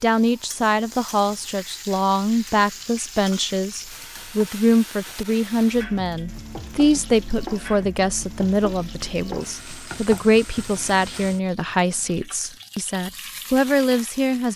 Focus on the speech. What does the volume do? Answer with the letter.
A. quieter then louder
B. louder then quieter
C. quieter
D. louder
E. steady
E.